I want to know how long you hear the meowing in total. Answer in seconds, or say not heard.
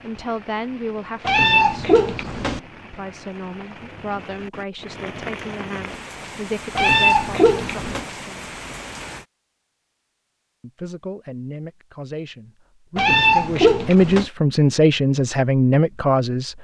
4 s.